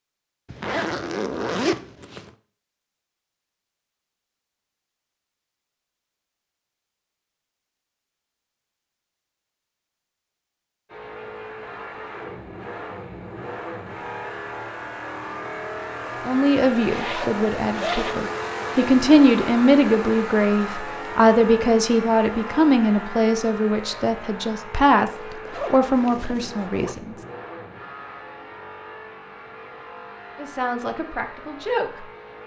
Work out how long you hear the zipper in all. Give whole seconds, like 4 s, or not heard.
5 s.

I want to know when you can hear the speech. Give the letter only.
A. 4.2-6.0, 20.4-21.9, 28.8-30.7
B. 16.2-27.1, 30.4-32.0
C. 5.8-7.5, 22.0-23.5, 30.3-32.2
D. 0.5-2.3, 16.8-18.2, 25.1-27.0
B.